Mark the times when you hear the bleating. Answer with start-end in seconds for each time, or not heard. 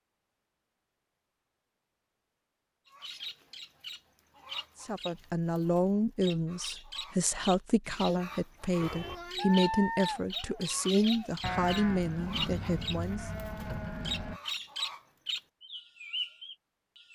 8.8-14.4.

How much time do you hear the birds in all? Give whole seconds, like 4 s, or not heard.
14 s.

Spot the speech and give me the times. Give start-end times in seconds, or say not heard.
4.8-13.2.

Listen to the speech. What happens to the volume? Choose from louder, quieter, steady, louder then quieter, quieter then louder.
steady.